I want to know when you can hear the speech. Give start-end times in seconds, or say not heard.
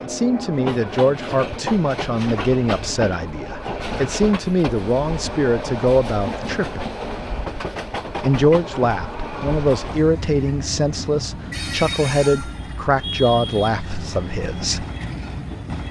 0.0-6.8, 8.2-14.8.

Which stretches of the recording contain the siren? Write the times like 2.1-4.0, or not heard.
not heard.